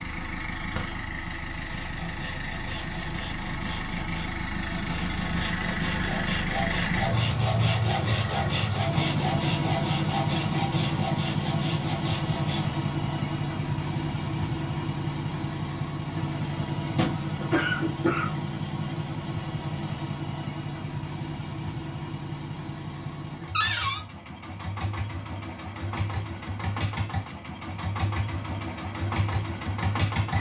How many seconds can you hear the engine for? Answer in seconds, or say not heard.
30 s.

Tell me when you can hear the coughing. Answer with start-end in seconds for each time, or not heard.
17.4-18.4.